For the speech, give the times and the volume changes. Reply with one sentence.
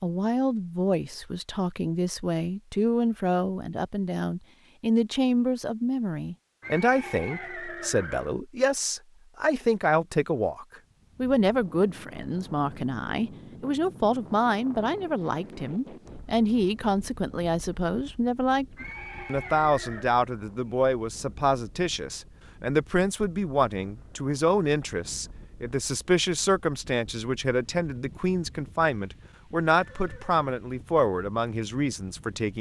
You can hear the speech from 0.0 to 32.5 s, at a steady volume.